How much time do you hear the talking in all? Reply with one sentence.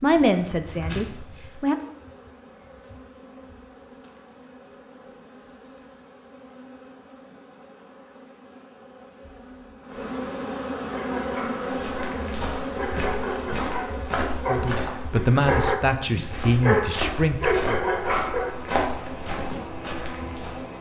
You can hear the talking for 5 seconds altogether.